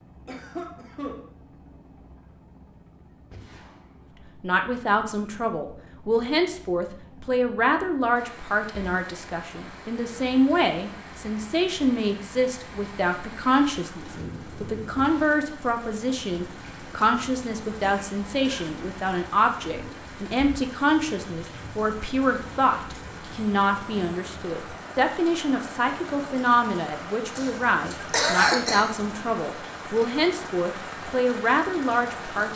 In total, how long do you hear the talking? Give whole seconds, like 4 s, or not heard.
28 s.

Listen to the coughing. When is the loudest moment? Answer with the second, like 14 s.
28 s.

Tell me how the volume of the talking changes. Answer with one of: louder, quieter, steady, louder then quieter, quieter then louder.
steady.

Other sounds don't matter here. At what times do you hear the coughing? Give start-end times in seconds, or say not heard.
0.2-1.2, 17.8-18.7, 27.4-28.9.